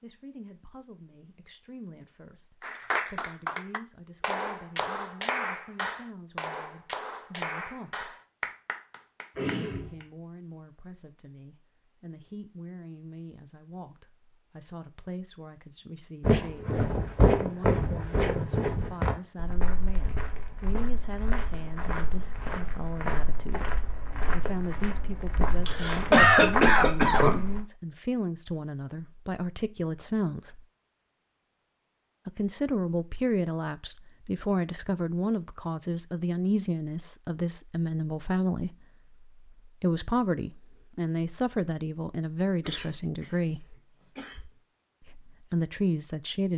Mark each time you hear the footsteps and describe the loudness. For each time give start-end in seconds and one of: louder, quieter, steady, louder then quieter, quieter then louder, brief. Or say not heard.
16.2-27.6 quieter then louder.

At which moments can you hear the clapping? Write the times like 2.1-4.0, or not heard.
2.6-10.1.